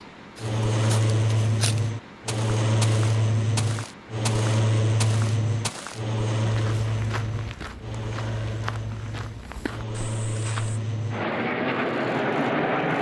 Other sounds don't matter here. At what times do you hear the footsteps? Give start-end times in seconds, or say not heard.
0.3-10.8.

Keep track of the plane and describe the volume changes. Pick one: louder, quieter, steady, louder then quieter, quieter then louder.
quieter then louder.